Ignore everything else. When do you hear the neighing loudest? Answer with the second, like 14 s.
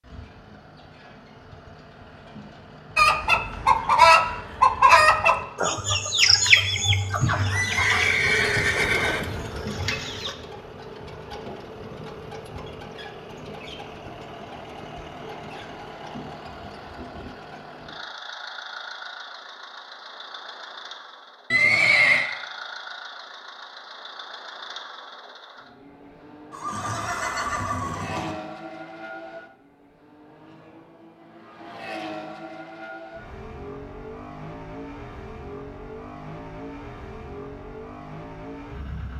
22 s.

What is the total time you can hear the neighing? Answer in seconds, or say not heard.
5 s.